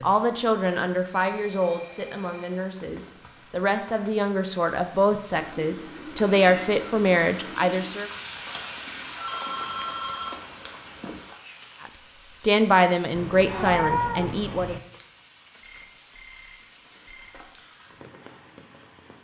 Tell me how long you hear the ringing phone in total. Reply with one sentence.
The ringing phone can be heard for 5 seconds in total.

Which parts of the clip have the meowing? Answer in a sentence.
The meowing can be heard from 5.3 to 8.0 s and from 13.2 to 14.8 s.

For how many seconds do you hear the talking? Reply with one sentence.
The talking can be heard for 11 seconds in total.